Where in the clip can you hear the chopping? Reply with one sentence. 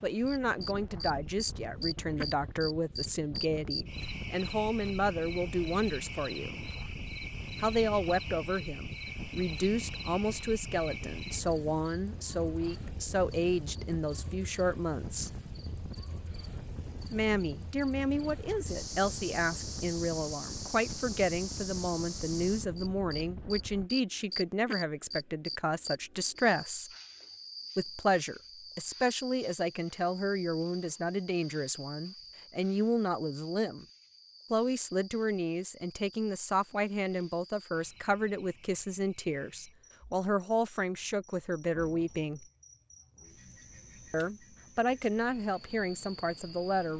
You can't hear the chopping here.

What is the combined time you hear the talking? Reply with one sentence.
The talking can be heard for 41 seconds in total.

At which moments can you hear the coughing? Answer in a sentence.
The coughing can't be heard in this clip.